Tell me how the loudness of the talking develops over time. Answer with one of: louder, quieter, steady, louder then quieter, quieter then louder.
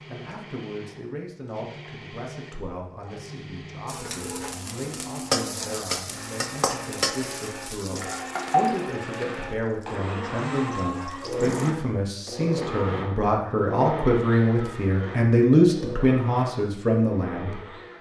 louder.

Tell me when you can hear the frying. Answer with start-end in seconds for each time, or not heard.
3.9-11.7.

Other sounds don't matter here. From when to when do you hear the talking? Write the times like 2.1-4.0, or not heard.
0.1-17.9.